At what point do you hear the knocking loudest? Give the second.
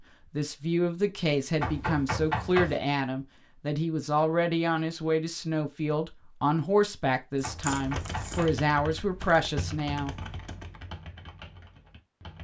2 s.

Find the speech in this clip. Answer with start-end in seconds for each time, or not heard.
0.3-10.2.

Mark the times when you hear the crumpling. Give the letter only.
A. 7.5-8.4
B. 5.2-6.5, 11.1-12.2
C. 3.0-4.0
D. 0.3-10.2
A.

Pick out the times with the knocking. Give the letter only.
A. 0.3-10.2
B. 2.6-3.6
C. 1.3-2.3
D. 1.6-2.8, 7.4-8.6
D.